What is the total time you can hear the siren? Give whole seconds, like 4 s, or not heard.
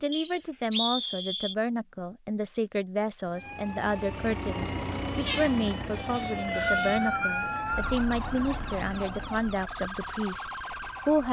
8 s.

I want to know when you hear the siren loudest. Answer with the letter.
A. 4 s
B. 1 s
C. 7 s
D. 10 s
C.